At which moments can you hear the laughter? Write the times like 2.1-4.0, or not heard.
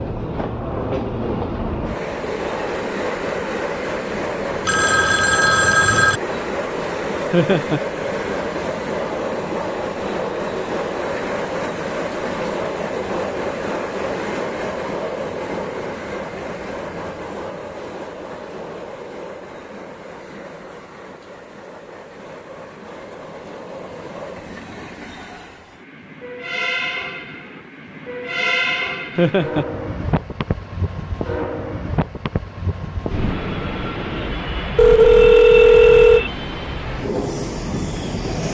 7.3-7.8, 29.1-29.6.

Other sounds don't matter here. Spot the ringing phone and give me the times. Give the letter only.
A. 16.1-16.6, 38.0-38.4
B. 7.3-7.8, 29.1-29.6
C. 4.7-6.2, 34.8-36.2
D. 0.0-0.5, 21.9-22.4
C.